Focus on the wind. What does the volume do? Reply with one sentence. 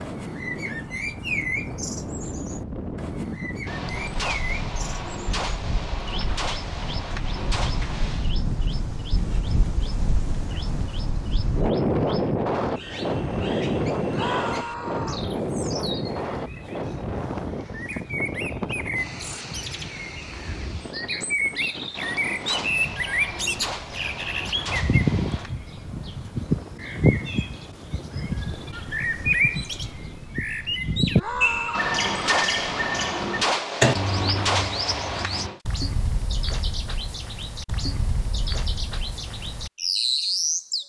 The volume of the wind goes up, then down.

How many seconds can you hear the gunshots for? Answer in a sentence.
The gunshots can be heard for 12 seconds in total.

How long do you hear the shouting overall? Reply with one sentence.
You can hear the shouting for 2 seconds altogether.